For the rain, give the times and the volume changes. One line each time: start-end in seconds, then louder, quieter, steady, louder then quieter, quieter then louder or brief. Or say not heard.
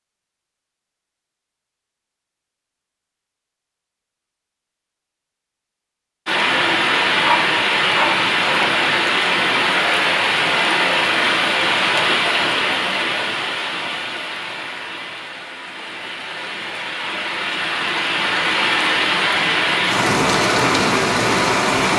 6.2-21.9 quieter then louder.